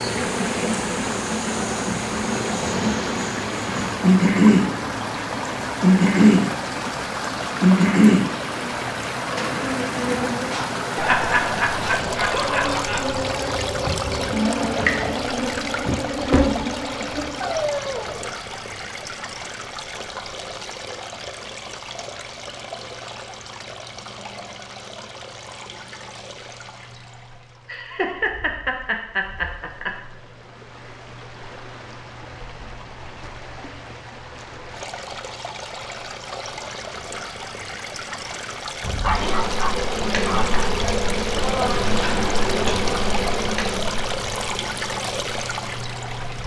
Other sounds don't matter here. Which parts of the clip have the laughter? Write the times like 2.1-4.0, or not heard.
10.9-13.2, 27.6-29.9.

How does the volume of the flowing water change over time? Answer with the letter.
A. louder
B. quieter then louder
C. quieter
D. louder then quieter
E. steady
B.